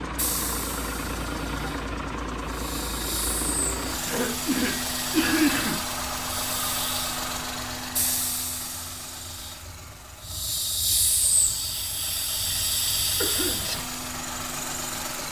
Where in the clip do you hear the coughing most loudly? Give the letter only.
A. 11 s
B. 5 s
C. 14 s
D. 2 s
B.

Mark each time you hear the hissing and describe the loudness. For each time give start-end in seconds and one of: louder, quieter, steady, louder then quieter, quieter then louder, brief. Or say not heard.
0.1-13.8 louder.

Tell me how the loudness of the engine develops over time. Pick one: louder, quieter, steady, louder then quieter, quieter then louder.
quieter then louder.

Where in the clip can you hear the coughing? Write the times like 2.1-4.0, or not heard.
4.0-5.8, 13.2-13.7.